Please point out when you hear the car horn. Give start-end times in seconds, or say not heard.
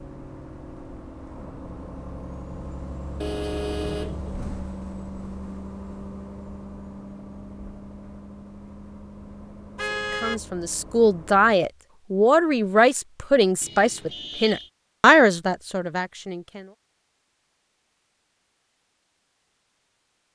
3.2-4.3, 9.8-10.4, 13.6-14.7.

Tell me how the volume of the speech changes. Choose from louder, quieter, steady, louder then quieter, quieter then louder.
steady.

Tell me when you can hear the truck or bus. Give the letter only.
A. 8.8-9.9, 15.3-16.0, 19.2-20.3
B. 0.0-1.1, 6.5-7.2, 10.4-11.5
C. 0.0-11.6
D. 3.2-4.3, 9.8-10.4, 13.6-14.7
C.